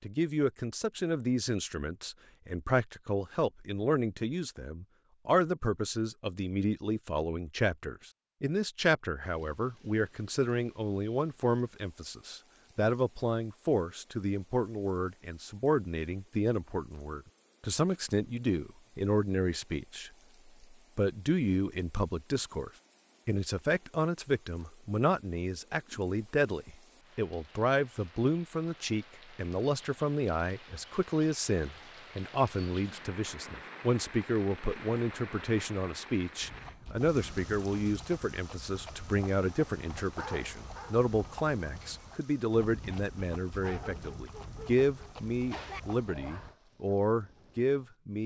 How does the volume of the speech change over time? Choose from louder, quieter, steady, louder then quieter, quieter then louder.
steady.